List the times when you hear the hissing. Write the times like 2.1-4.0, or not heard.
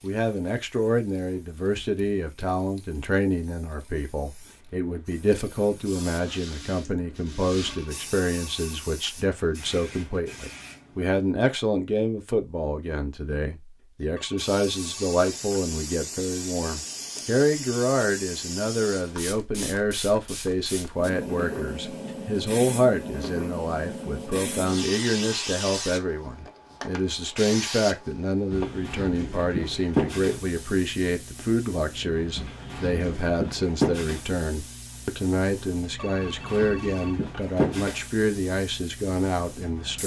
0.0-11.2, 14.3-40.0.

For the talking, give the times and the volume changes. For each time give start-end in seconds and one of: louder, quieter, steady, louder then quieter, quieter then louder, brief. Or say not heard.
0.0-40.0 steady.